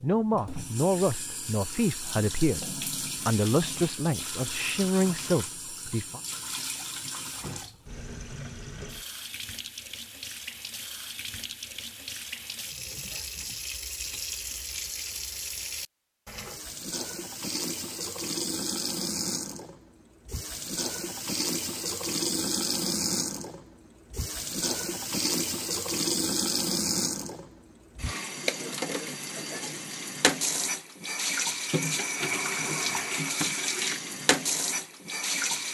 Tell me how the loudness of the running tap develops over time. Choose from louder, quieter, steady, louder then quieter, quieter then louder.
louder.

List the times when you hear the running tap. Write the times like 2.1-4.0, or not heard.
0.0-35.6.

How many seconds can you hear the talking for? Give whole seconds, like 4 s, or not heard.
6 s.